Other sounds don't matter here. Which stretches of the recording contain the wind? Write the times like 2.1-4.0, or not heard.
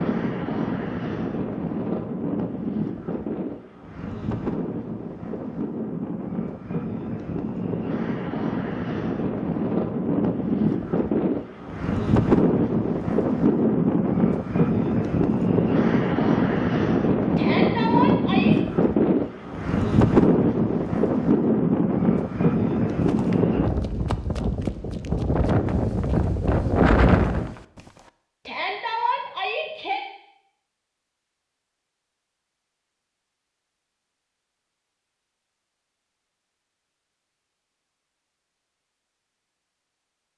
0.0-27.6.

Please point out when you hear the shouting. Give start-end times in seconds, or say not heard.
17.4-18.6, 28.4-30.0.